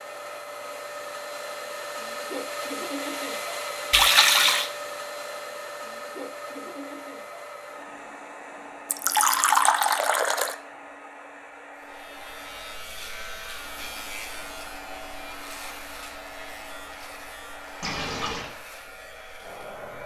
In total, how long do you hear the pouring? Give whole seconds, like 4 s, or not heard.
3 s.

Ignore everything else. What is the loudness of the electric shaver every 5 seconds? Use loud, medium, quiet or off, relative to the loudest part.
off, off, loud, loud.